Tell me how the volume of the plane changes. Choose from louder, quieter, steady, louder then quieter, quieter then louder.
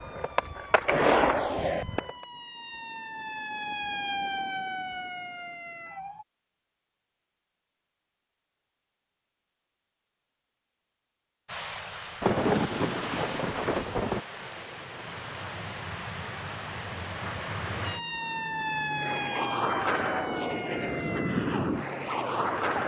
louder.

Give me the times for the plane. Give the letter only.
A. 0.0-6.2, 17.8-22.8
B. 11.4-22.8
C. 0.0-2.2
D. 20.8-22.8
B.